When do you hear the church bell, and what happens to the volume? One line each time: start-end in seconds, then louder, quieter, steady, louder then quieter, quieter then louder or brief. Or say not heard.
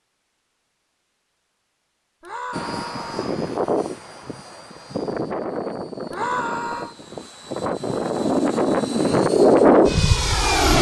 not heard.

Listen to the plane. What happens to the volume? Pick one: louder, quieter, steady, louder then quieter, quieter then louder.
quieter then louder.